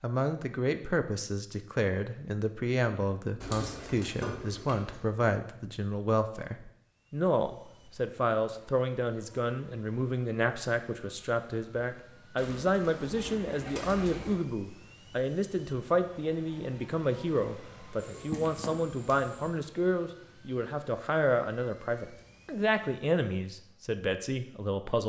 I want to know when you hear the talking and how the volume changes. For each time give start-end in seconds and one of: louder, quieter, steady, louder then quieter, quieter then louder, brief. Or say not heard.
0.0-25.0 steady.